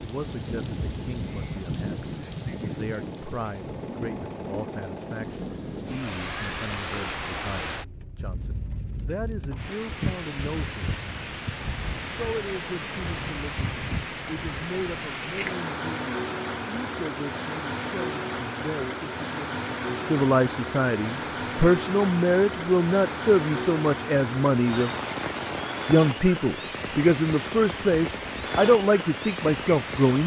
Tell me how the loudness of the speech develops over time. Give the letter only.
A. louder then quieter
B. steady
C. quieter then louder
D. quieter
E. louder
E.